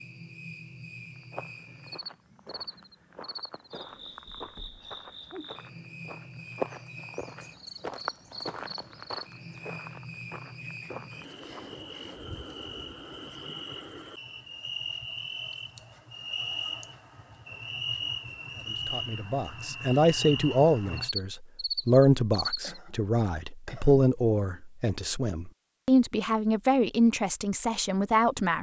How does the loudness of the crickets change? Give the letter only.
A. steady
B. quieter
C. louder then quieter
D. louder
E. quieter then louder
D.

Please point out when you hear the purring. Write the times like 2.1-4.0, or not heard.
not heard.